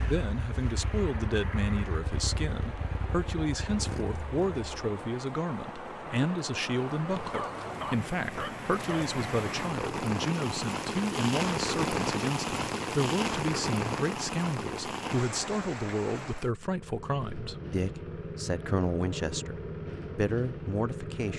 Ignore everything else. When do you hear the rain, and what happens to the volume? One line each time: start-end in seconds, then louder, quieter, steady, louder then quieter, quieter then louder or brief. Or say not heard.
0.0-16.6 louder.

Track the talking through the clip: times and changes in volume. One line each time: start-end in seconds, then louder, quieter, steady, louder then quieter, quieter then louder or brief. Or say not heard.
0.1-21.3 steady.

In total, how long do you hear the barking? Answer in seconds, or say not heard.
2 s.